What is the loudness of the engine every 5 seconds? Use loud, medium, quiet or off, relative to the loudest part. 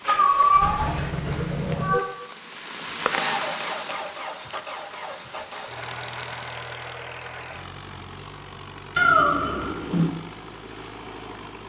loud, medium, medium.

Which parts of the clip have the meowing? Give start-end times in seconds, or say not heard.
0.1-2.0, 8.9-10.1.